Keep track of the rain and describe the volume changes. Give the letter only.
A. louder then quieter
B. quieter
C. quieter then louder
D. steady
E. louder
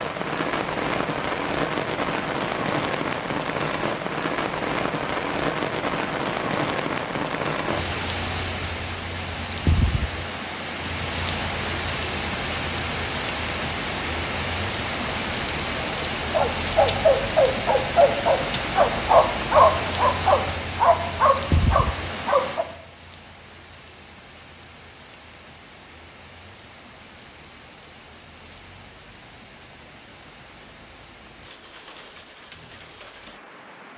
B.